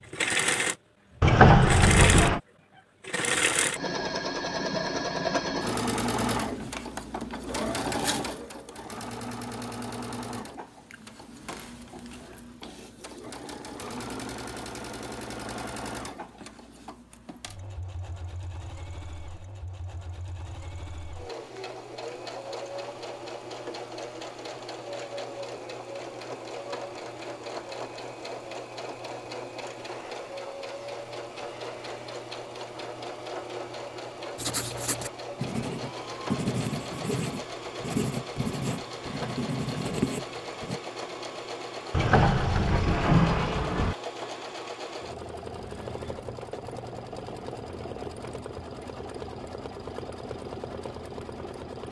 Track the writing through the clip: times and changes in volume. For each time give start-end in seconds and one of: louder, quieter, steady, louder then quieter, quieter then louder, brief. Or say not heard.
34.4-40.8 steady.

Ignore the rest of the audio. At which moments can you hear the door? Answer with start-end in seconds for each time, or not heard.
1.2-2.4, 41.9-44.0.